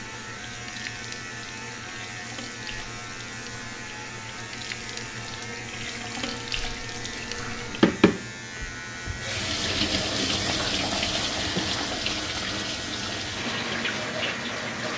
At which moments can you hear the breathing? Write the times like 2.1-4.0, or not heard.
not heard.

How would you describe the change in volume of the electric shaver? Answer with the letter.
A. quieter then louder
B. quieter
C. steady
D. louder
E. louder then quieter
C.